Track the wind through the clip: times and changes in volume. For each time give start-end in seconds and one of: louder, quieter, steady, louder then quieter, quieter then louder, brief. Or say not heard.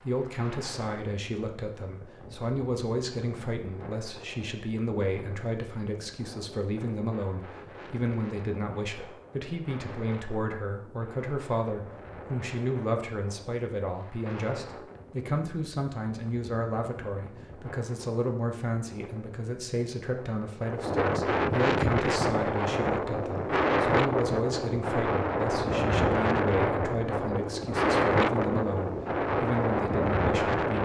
0.0-30.8 louder.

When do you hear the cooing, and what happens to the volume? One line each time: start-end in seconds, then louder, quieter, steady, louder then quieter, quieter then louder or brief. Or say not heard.
not heard.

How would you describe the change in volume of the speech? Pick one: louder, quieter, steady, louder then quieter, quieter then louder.
steady.